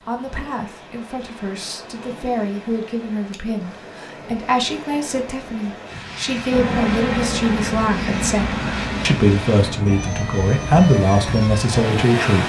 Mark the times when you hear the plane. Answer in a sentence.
You can hear the plane from 6.5 to 12.4 s.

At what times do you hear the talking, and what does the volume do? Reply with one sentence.
You can hear the talking from 0.0 to 12.4 s, getting louder.